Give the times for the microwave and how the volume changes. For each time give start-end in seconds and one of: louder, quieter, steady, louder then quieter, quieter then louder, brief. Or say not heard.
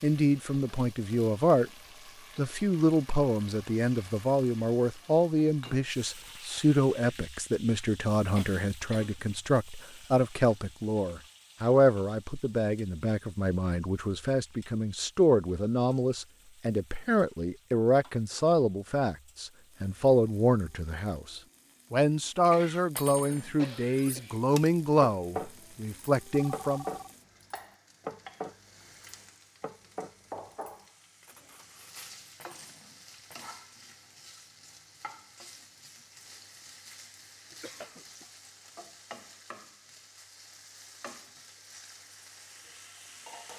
not heard.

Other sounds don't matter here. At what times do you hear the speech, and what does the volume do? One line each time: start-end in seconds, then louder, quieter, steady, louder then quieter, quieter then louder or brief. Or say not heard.
0.0-1.7 brief
2.4-26.9 steady.